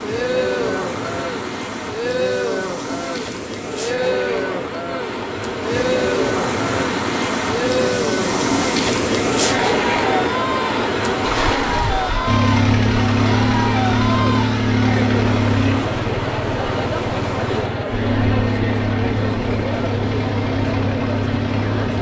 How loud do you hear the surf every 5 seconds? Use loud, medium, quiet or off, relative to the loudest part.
medium, loud, loud, medium, medium.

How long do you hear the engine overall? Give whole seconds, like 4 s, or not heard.
10 s.